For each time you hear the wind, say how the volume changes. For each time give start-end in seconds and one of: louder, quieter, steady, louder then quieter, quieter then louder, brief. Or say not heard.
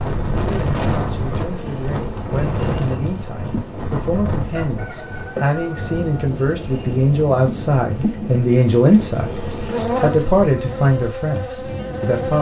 0.0-12.3 quieter.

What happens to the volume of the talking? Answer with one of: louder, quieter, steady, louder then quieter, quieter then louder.
louder.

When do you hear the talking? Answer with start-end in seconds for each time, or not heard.
0.0-12.3.